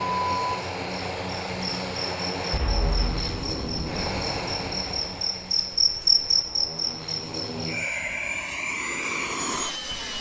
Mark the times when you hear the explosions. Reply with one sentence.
You can hear the explosions from 2.5 to 5.2 s.